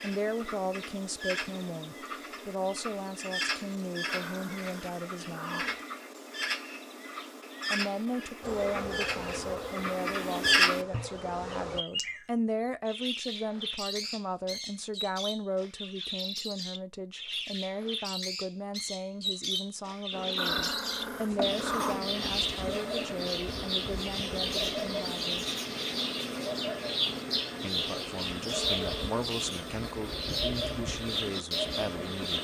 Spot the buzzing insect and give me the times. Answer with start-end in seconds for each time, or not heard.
8.4-11.8, 20.1-32.3.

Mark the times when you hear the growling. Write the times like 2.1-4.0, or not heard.
4.0-5.8, 20.4-22.1.